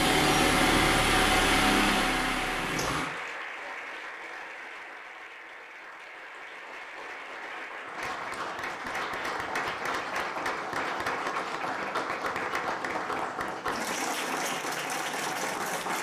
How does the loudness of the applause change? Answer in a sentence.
The volume of the applause goes down, then up.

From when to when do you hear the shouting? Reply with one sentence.
You can't hear the shouting here.